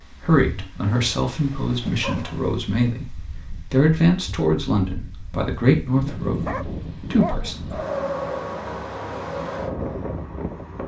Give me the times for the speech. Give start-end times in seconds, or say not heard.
0.1-7.5.